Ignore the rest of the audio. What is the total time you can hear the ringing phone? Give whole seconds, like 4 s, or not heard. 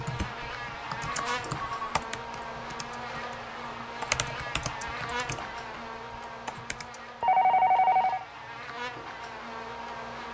2 s.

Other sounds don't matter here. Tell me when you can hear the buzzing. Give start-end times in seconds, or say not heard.
0.0-10.3.